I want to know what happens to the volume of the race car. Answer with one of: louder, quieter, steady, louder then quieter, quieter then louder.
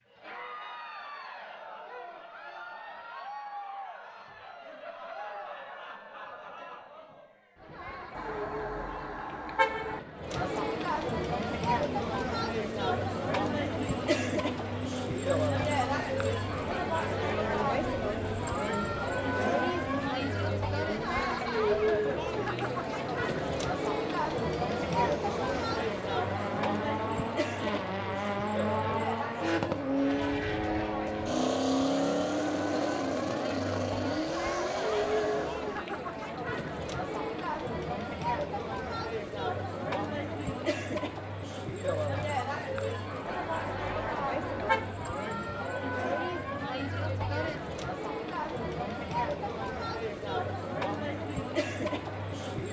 louder.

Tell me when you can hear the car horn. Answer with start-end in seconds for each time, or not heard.
8.2-10.0, 43.2-44.9.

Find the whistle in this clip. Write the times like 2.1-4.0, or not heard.
not heard.